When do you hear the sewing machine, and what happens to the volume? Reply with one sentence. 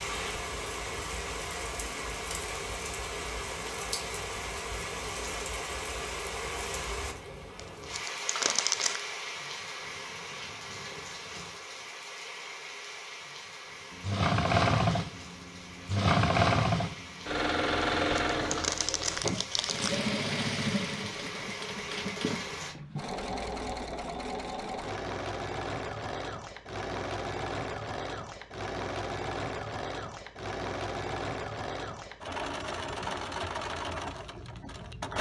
The sewing machine can be heard from 13.9 to 35.1 s, getting quieter.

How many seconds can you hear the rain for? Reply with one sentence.
You can hear the rain for 23 seconds altogether.